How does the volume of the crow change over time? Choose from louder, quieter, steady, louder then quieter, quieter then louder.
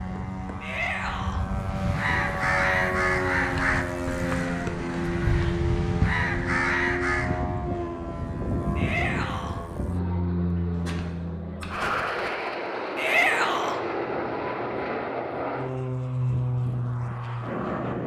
quieter then louder.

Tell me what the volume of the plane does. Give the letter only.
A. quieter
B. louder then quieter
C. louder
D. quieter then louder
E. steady
E.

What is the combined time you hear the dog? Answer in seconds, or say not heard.
not heard.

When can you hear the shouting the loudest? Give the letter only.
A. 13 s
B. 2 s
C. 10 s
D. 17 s
A.